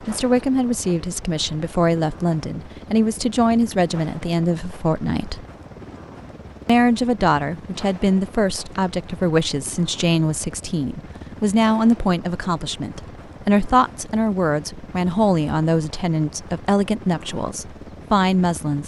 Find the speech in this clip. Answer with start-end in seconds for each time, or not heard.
0.1-5.5, 6.7-18.8.